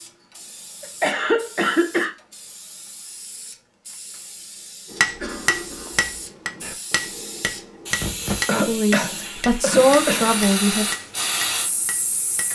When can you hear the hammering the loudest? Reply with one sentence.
The loudest moment of the hammering is at 5 seconds.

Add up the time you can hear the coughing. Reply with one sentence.
You can hear the coughing for 4 seconds altogether.